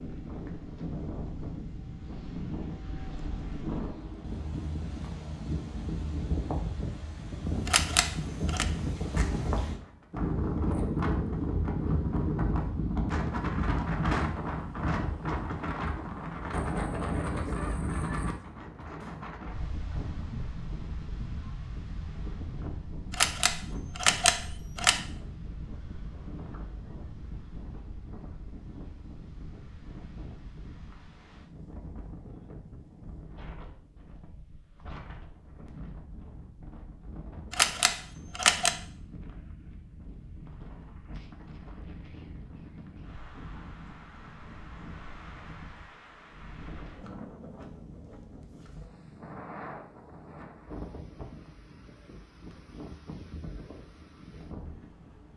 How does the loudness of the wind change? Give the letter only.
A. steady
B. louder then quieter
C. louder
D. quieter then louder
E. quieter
E.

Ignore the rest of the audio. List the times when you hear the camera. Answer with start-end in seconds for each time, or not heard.
7.7-8.7, 23.1-25.0, 37.5-38.8.